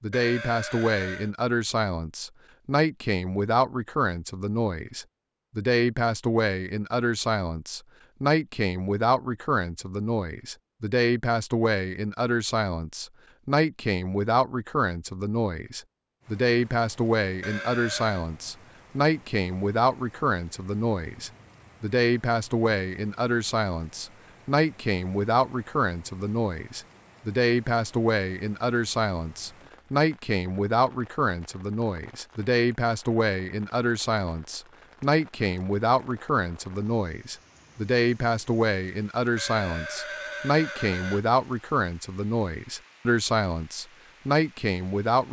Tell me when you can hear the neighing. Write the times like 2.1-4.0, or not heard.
0.1-1.3, 17.4-18.2, 39.4-41.2.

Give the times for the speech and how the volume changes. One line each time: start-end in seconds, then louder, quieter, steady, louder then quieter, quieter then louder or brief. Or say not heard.
0.0-45.2 steady.